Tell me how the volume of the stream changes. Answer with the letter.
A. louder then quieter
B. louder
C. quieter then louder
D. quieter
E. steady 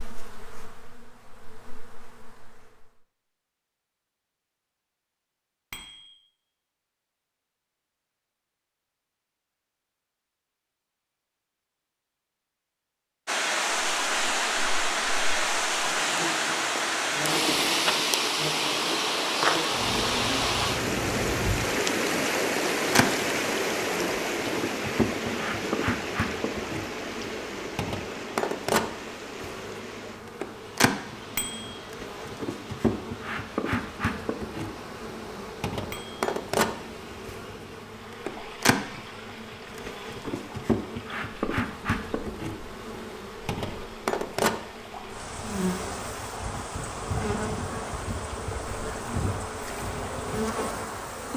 D.